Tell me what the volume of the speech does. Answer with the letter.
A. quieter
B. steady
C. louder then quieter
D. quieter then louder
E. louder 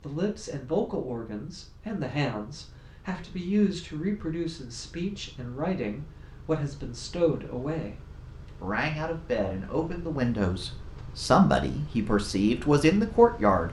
E.